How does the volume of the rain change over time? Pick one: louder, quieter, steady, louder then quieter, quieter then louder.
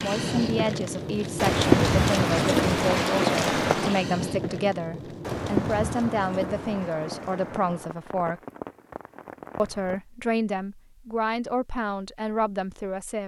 quieter.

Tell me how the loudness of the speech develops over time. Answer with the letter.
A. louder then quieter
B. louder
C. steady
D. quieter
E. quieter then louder
C.